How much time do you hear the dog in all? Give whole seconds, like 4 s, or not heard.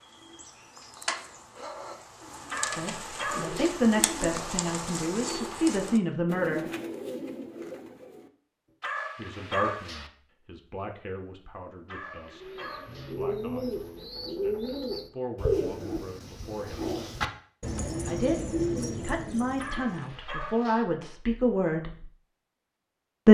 5 s.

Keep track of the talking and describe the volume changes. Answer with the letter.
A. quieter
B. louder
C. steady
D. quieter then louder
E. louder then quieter
D.